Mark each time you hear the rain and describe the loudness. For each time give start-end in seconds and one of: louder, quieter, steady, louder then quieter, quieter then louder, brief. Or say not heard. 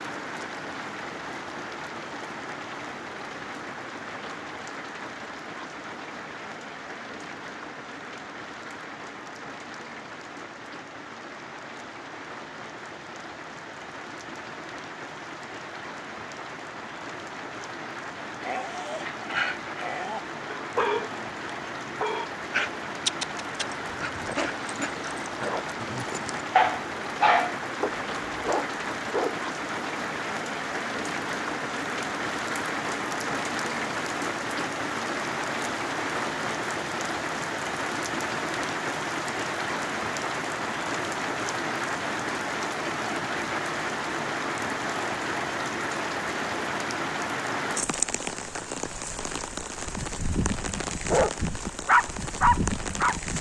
0.0-53.3 louder.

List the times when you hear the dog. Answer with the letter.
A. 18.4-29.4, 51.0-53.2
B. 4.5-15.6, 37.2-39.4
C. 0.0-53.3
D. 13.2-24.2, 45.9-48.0
A.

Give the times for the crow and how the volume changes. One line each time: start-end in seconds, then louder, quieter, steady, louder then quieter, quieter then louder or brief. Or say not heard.
not heard.